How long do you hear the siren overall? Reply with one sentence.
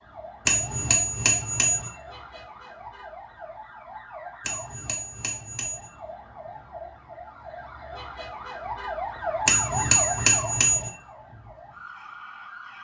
You can hear the siren for 13 seconds altogether.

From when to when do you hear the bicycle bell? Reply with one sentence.
The bicycle bell can be heard from 0.5 to 1.9 s, from 4.5 to 5.9 s and from 9.4 to 10.9 s.